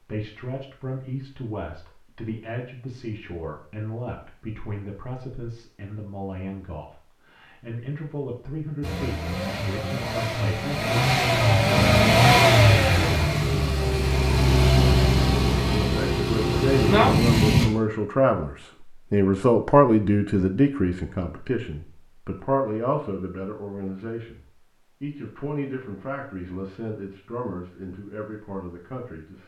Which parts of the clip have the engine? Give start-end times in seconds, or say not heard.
8.8-17.6.